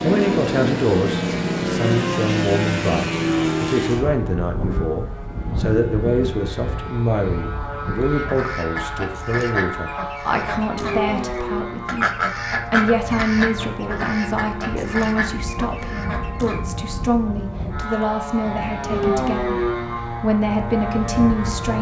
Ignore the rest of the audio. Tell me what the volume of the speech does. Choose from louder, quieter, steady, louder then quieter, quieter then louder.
steady.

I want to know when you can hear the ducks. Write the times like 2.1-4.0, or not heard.
8.1-16.6.